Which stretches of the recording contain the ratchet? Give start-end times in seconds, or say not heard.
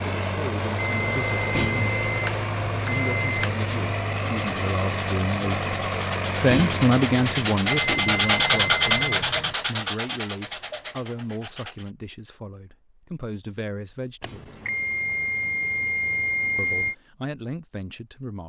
not heard.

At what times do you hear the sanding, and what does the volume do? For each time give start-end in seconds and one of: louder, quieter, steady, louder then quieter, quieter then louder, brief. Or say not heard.
2.8-11.9 louder then quieter.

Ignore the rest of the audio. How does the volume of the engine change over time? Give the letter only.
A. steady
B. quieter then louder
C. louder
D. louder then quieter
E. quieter
A.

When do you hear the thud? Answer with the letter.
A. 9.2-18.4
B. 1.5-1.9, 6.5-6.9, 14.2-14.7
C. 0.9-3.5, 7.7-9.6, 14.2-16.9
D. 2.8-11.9
B.